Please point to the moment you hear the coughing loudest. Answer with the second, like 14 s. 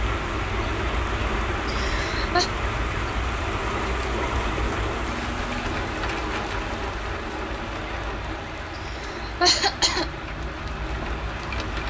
10 s.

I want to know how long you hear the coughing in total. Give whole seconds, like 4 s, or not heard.
2 s.